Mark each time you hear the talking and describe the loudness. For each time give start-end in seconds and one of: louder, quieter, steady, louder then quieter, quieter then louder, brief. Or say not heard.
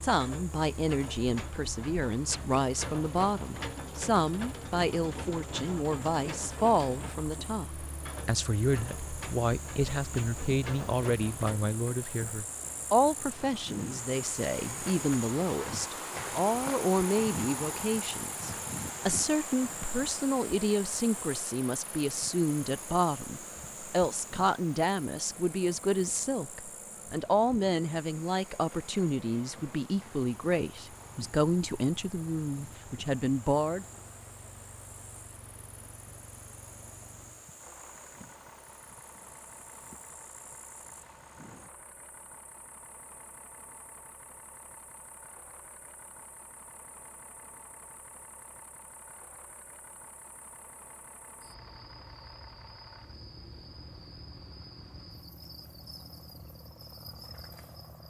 0.0-33.9 steady.